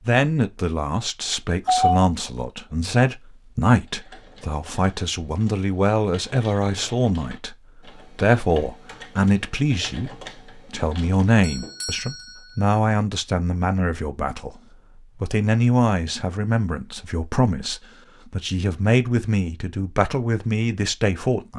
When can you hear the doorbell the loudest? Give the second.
2 s.